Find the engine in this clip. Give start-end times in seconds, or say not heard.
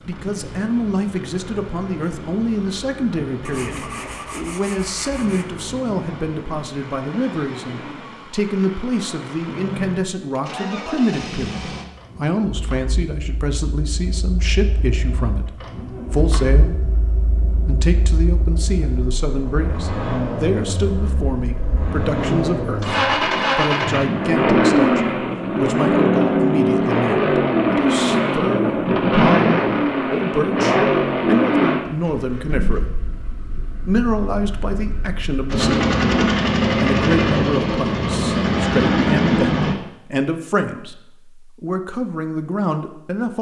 0.0-39.8.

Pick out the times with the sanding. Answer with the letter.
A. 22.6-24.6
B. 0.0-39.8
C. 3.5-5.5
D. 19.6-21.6
C.